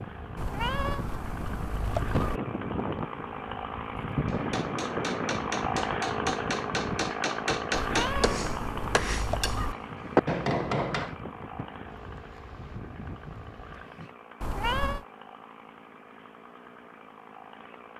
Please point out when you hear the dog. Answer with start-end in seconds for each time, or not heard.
not heard.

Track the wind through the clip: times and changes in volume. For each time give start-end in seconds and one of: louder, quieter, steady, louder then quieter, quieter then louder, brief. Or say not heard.
0.0-14.2 quieter.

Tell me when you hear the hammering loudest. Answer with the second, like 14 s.
10 s.